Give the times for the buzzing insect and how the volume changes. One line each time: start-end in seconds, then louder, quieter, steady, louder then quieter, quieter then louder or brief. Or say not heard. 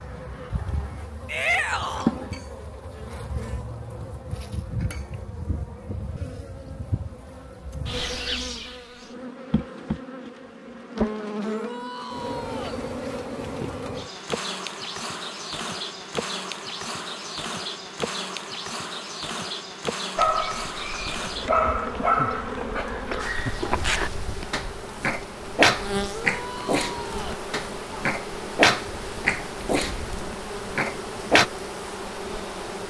0.0-32.8 steady.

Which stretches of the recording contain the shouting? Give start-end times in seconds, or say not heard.
1.2-2.1, 11.4-12.8, 26.0-27.4.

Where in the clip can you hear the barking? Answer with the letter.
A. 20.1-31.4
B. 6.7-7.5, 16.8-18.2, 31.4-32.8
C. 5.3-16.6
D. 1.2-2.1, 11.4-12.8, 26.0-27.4
A.